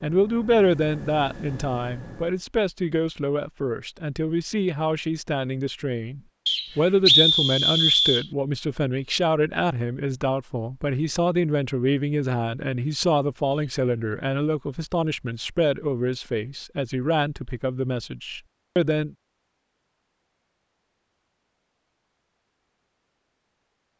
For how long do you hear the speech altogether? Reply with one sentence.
The speech can be heard for 19 seconds in total.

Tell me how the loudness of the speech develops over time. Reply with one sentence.
The loudness of the speech stays about the same.